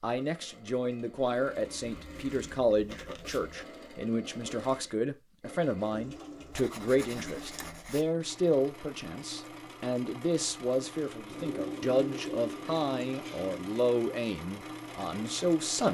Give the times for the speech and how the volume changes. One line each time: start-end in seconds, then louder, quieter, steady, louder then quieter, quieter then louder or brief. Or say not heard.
0.0-15.8 steady.